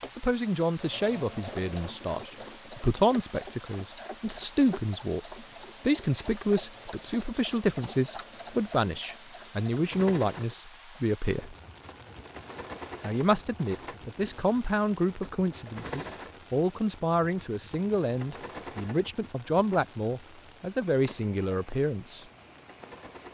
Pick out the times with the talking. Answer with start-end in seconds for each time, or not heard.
0.1-11.6, 13.0-22.2.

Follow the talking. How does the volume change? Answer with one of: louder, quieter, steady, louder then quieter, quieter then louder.
steady.